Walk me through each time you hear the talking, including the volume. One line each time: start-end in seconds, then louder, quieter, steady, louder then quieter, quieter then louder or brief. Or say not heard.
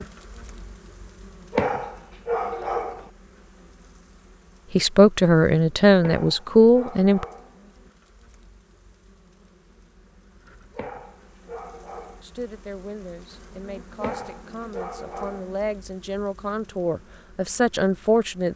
4.8-7.2 brief
12.2-18.5 louder.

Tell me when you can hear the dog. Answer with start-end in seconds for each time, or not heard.
1.5-3.1, 6.0-7.5, 10.7-12.2, 14.0-15.4.